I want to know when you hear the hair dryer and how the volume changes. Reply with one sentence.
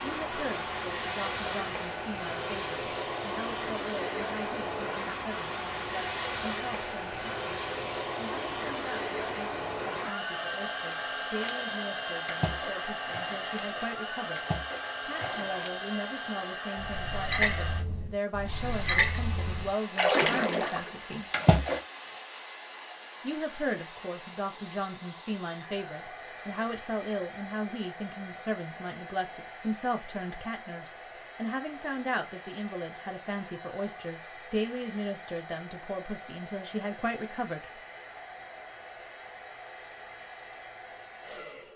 You can hear the hair dryer from 0.0 to 41.7 s, getting quieter.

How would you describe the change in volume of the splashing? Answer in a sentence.
The loudness of the splashing goes up.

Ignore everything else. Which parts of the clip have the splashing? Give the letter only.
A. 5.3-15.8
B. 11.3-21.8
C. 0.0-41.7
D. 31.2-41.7
B.